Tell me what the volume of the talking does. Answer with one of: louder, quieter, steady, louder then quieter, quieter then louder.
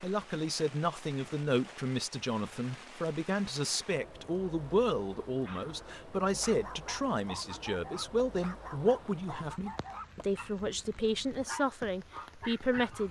steady.